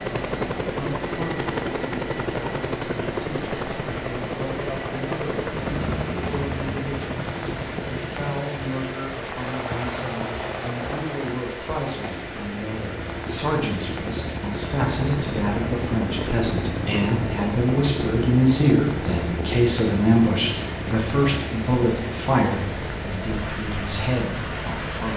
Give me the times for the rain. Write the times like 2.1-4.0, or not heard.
0.0-25.1.